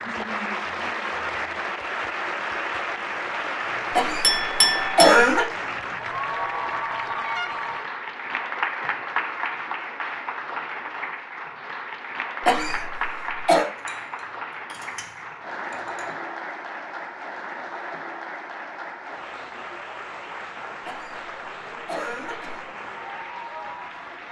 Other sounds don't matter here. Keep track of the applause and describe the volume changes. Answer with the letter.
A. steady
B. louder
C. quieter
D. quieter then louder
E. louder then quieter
C.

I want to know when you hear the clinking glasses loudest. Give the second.
5 s.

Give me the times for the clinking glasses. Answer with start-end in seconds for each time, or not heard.
4.2-5.2, 13.6-16.2.